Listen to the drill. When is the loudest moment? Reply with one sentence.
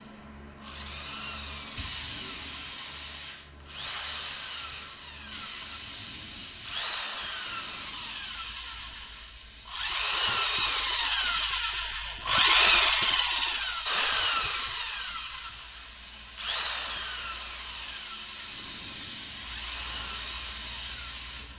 The loudest moment of the drill is at 13 seconds.